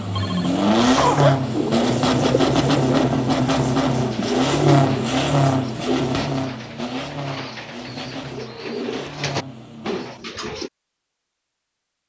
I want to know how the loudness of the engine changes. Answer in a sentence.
The loudness of the engine goes down.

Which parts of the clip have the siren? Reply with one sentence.
The siren can't be heard in this clip.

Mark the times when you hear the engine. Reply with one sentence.
You can hear the engine from 0.0 to 10.3 s.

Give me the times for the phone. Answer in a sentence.
The phone can be heard from 0.1 to 1.4 s.